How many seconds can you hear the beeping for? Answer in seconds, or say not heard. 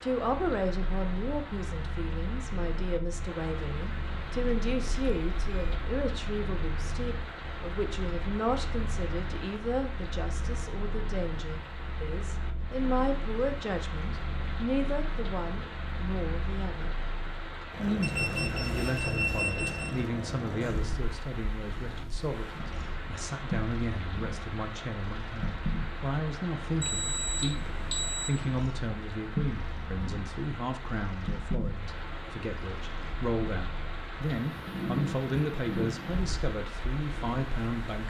4 s.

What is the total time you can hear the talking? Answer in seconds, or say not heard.
37 s.